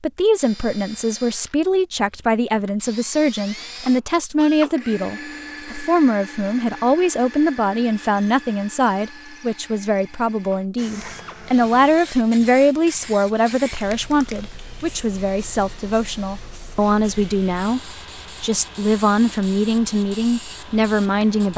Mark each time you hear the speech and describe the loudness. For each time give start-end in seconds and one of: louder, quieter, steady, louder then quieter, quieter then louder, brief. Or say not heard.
0.0-21.5 steady.